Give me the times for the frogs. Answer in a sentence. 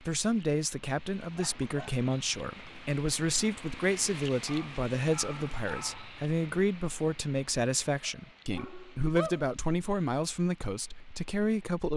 The frogs can't be heard in this clip.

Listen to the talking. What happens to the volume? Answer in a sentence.
The loudness of the talking stays about the same.